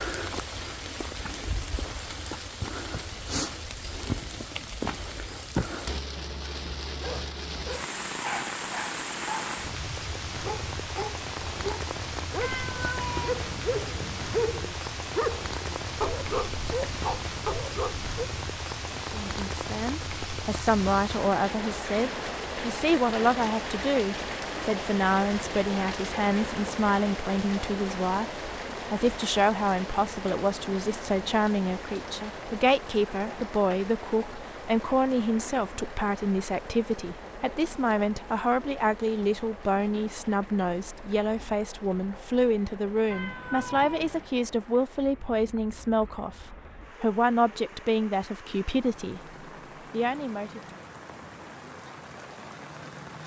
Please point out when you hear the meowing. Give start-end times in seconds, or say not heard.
12.4-14.4, 43.1-44.3.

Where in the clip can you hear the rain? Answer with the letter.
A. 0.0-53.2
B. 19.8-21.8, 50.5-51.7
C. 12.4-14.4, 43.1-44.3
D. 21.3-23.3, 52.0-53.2
A.